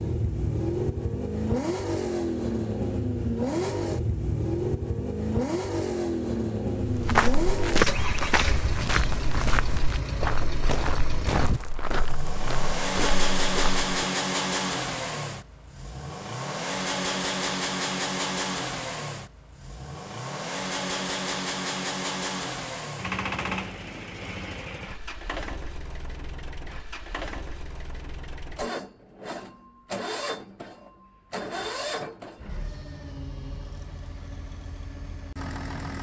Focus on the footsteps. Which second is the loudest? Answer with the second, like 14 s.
8 s.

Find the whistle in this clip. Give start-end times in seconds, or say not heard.
not heard.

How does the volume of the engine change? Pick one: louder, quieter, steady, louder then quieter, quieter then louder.
quieter.